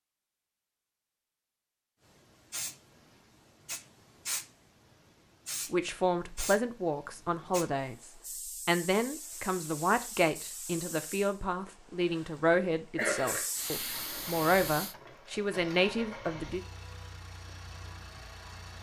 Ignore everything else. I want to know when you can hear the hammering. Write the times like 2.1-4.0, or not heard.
not heard.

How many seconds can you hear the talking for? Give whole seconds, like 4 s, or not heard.
11 s.